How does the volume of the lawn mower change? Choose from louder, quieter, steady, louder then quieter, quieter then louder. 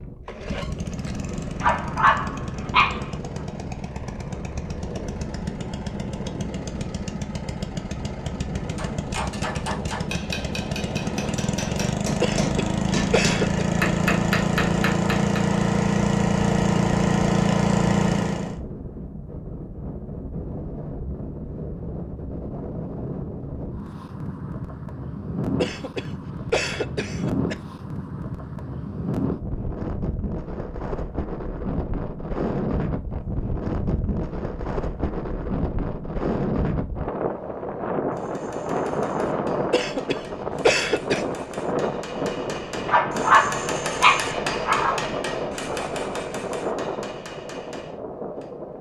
louder.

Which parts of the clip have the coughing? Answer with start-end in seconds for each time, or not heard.
12.2-13.7, 25.6-27.6, 39.7-41.2.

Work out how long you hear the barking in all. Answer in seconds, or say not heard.
4 s.